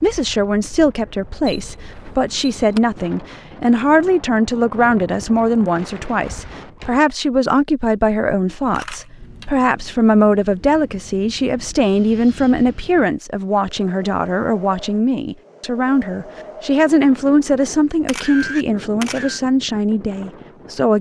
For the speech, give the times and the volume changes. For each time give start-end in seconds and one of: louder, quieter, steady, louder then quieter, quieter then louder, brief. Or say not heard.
0.0-20.9 steady.